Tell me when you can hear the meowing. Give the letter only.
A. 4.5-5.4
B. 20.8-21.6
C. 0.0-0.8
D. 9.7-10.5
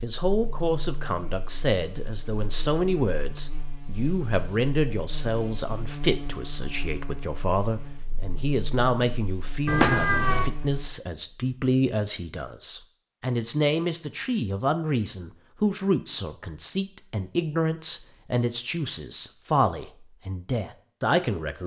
D.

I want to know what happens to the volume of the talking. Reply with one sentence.
The loudness of the talking stays about the same.